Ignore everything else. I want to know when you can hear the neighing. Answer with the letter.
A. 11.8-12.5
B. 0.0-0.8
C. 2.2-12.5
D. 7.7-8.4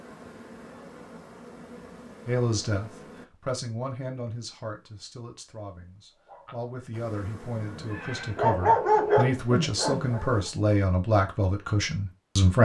D.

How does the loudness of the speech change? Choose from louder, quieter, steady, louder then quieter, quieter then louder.
quieter then louder.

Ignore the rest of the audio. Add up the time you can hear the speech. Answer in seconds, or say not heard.
10 s.